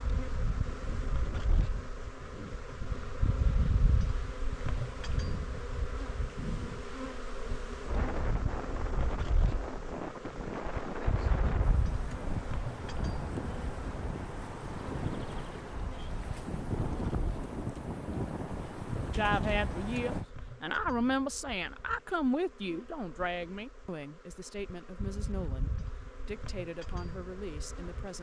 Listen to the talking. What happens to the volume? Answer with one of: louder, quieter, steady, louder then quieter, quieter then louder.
quieter.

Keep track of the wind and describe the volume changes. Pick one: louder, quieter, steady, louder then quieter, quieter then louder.
louder.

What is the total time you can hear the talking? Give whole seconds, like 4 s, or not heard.
9 s.